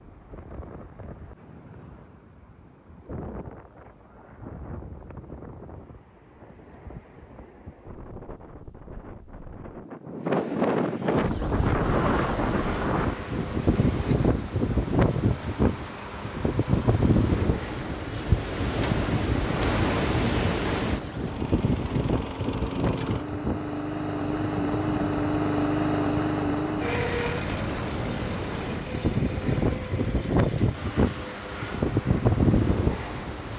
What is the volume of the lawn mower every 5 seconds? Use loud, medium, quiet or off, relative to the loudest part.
off, off, medium, medium, loud, loud, medium.